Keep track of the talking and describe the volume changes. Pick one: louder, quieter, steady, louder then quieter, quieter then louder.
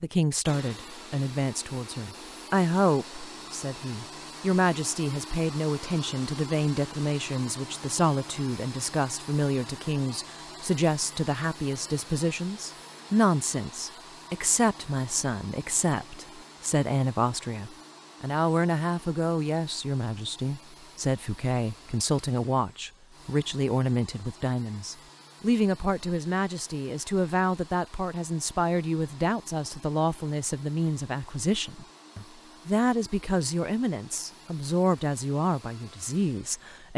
steady.